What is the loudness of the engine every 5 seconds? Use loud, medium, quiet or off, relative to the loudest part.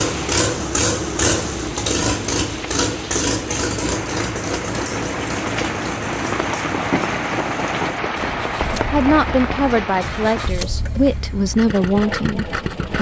loud, medium, medium.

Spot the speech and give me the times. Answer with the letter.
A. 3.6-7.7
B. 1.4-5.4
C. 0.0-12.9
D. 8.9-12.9
D.